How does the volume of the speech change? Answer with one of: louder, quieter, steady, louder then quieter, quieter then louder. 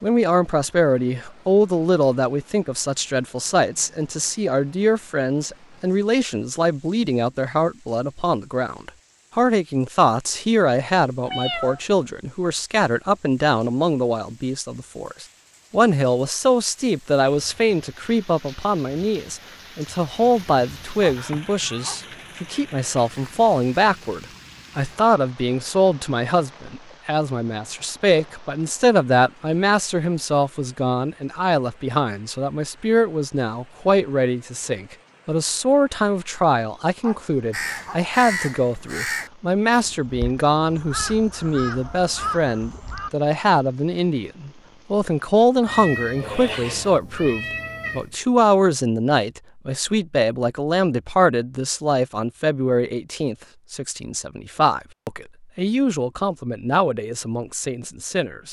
steady.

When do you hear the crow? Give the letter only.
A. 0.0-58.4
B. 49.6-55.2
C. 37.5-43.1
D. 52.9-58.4
C.